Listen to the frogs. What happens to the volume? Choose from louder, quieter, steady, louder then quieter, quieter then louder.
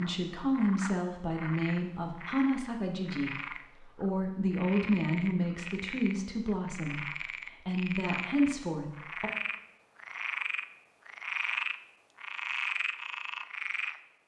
louder.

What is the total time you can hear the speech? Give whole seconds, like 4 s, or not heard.
9 s.